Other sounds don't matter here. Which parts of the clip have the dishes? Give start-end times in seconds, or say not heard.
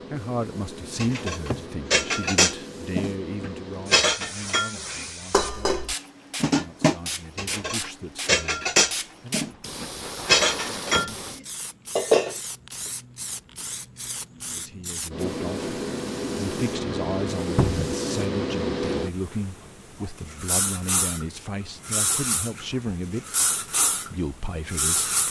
1.0-11.2, 11.9-12.3.